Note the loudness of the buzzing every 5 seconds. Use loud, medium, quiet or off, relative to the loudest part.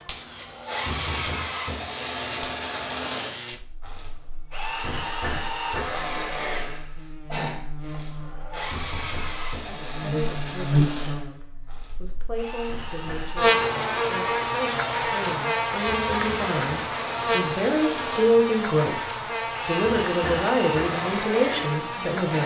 medium, quiet, loud, loud, medium.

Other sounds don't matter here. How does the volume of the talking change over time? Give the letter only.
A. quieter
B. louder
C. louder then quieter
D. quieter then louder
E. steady
B.